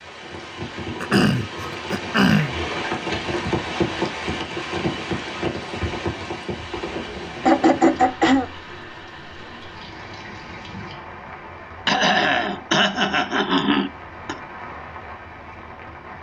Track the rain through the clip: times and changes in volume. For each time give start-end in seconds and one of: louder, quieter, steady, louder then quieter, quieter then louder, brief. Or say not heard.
0.0-16.1 quieter.